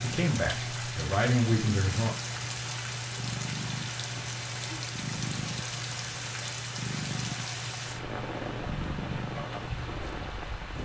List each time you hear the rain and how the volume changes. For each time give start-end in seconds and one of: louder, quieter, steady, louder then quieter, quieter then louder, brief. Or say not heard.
0.0-10.7 steady.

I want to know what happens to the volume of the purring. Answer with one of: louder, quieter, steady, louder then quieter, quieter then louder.
steady.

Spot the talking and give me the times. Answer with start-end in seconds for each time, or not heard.
0.0-2.1.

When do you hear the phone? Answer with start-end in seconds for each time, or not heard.
not heard.